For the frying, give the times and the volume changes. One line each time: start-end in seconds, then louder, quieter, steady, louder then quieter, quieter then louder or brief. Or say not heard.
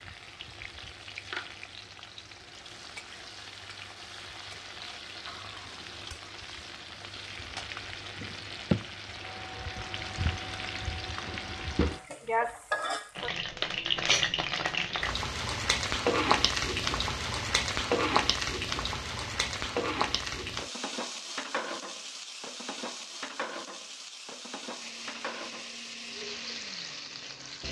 0.0-27.6 louder then quieter.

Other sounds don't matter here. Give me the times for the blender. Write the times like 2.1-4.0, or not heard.
9.2-12.1, 24.8-27.6.